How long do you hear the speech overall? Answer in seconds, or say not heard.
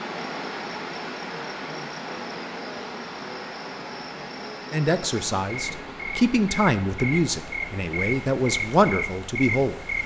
5 s.